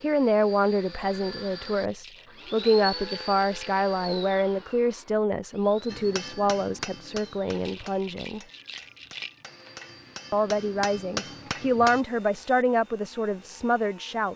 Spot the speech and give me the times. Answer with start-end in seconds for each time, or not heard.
0.0-8.4, 10.3-14.3.